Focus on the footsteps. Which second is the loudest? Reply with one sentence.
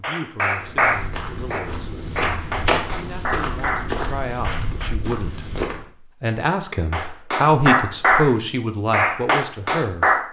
The volume of the footsteps peaks at 3 seconds.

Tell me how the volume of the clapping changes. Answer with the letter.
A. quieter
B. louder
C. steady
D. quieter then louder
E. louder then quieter
D.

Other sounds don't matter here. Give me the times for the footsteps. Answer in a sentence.
You can hear the footsteps from 0.6 to 5.9 s.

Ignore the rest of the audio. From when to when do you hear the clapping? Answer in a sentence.
The clapping can be heard from 0.0 to 5.0 s and from 6.9 to 10.2 s.